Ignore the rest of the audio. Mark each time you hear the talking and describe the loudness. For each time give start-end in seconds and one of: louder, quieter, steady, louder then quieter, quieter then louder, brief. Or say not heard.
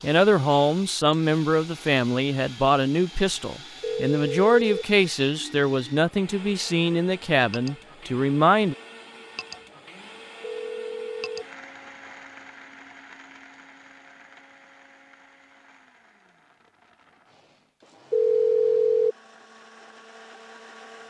0.0-8.8 steady.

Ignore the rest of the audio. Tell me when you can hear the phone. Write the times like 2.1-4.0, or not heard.
3.8-4.8, 10.4-11.4, 18.1-19.1.